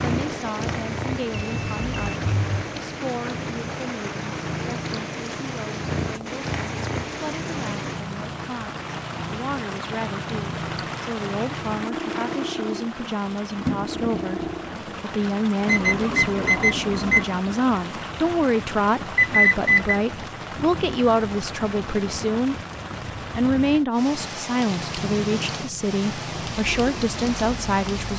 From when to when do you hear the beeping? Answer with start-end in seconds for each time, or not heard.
1.3-2.5, 15.7-17.2, 19.1-20.0.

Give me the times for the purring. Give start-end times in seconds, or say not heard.
0.0-14.8, 24.6-28.1.